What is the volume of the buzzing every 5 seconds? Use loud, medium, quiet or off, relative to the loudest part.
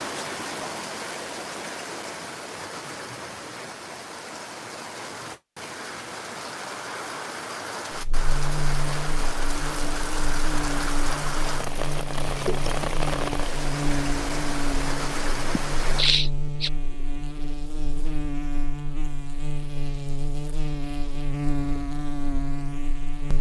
off, loud, loud, loud, loud.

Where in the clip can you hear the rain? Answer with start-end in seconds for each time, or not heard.
0.0-16.1.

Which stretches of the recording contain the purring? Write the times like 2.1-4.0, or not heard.
not heard.